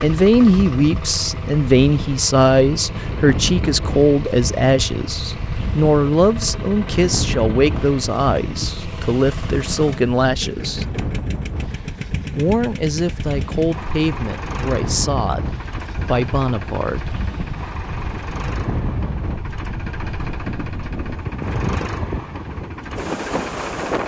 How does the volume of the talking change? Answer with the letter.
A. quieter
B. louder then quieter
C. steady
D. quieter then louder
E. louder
A.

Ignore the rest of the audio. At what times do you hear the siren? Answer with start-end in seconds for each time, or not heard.
not heard.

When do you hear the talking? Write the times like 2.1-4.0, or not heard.
0.0-10.8, 12.3-17.1.